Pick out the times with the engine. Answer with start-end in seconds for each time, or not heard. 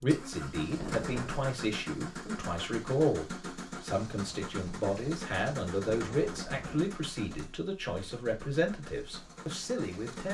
0.0-10.2.